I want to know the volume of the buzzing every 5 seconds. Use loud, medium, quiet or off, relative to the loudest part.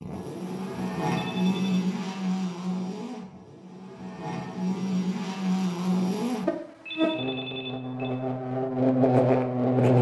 medium, loud.